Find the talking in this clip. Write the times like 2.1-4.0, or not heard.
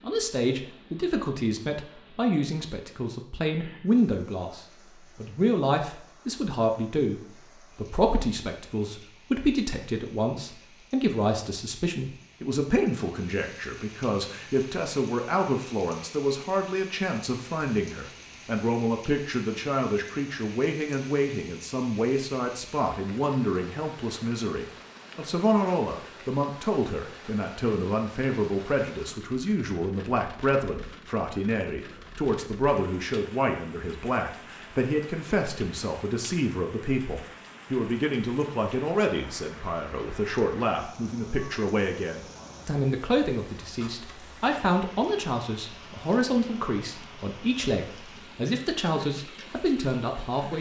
0.0-50.5.